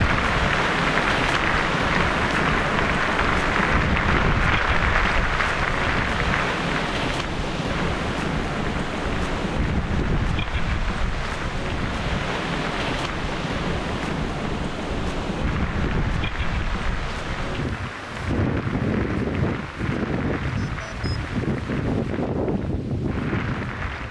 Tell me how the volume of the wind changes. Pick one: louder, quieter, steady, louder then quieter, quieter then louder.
steady.